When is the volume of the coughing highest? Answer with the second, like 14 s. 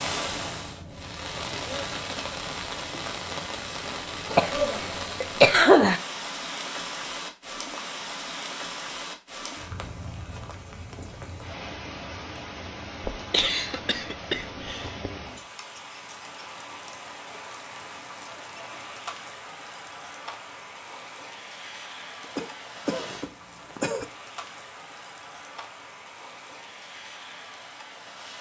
6 s.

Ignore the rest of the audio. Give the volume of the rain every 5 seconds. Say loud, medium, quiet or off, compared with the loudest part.
loud, loud, medium, medium, medium, medium.